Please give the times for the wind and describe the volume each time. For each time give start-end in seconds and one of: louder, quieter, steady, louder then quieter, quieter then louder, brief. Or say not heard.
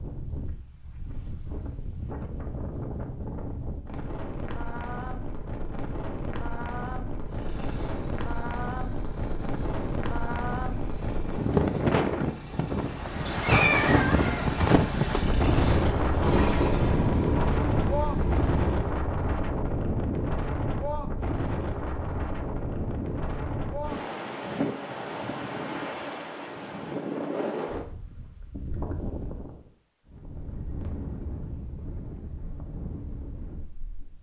0.0-34.1 louder then quieter.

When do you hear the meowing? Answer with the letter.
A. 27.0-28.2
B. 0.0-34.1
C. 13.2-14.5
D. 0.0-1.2
C.